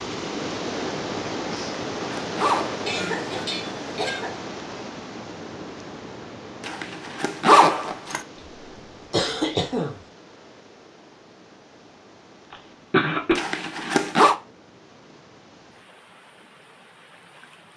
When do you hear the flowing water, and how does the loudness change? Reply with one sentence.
You can hear the flowing water from 0.0 to 17.7 s, getting quieter.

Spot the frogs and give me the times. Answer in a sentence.
You can't hear the frogs here.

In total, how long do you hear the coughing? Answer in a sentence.
You can hear the coughing for 3 seconds altogether.